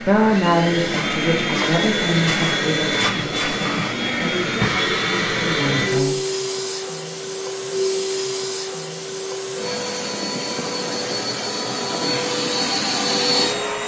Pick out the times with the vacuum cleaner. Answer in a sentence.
You can hear the vacuum cleaner from 0.0 to 13.8 s.